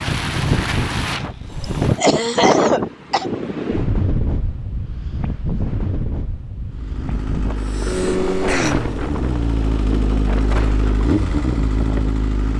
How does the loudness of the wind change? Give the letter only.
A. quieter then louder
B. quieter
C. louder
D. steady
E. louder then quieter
B.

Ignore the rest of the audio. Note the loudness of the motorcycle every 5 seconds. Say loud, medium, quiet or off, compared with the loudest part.
off, loud, loud.